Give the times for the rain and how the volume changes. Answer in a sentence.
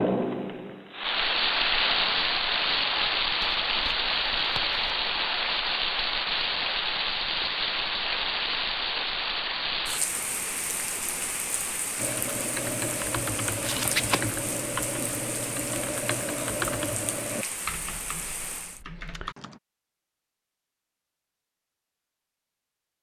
You can hear the rain from 0.0 to 18.8 s, getting quieter.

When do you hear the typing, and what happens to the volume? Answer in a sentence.
The typing can be heard from 11.9 to 19.6 s, getting quieter.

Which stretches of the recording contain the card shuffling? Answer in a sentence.
You can hear the card shuffling from 3.4 to 5.0 s and from 13.6 to 14.3 s.